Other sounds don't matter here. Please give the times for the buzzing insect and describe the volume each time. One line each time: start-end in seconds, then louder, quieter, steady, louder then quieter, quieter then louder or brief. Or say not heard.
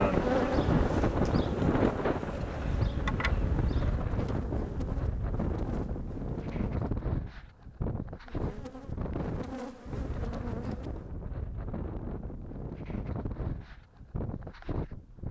0.0-6.9 quieter
8.2-11.1 brief.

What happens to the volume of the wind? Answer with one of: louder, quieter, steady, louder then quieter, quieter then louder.
quieter.